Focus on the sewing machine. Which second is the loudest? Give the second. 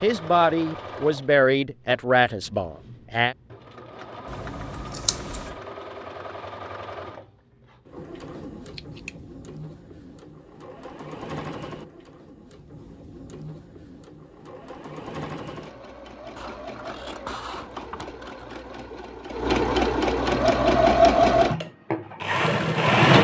21 s.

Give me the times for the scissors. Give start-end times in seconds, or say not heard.
4.2-5.5, 8.8-9.2, 16.4-18.6.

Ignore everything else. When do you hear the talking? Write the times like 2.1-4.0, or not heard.
0.0-3.4.